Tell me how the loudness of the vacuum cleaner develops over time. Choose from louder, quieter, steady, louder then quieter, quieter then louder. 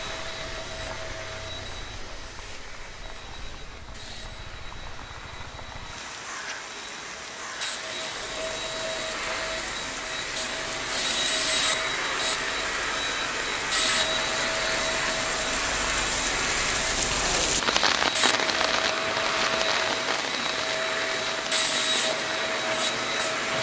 louder.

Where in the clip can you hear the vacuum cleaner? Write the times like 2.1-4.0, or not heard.
0.0-23.5.